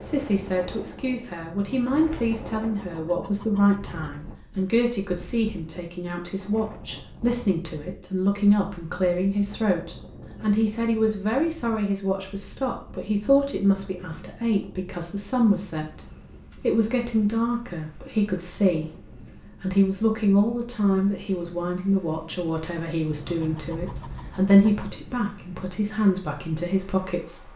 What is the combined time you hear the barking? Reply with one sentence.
The barking can't be heard in this clip.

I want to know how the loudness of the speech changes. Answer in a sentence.
The loudness of the speech stays about the same.